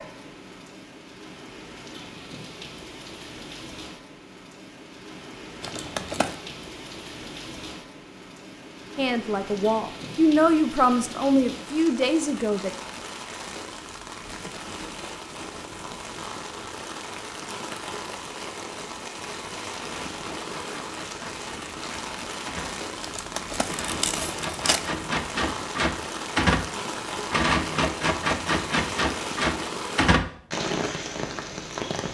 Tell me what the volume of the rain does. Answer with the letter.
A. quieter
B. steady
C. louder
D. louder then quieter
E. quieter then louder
C.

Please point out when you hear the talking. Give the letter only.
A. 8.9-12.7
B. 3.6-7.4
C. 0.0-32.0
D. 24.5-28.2
A.